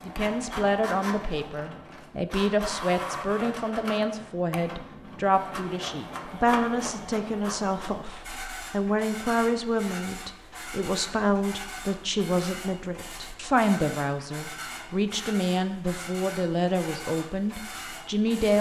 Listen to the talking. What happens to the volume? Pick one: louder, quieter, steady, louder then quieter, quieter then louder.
steady.